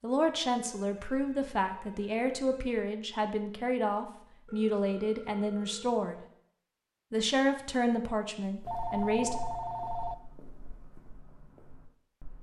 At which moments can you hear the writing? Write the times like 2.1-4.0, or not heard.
not heard.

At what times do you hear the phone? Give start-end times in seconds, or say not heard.
0.6-2.6, 4.5-6.0, 8.7-10.2.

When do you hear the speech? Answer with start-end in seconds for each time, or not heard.
0.0-6.2, 7.1-9.4.